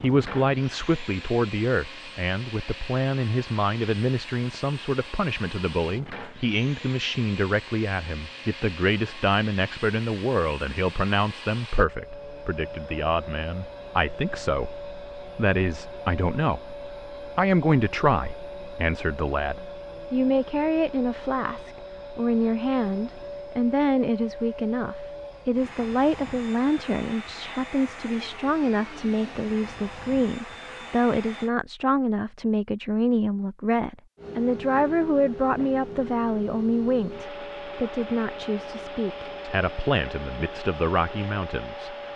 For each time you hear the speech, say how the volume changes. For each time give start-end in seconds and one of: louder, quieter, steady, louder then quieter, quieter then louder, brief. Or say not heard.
0.0-42.1 steady.